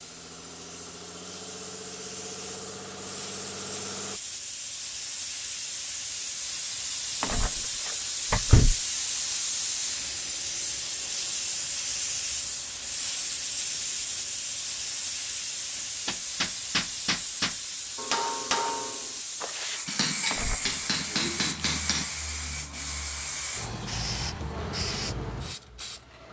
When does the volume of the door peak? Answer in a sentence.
The loudest moment of the door is at 8 seconds.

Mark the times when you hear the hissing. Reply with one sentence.
You can hear the hissing from 0.0 to 26.2 s.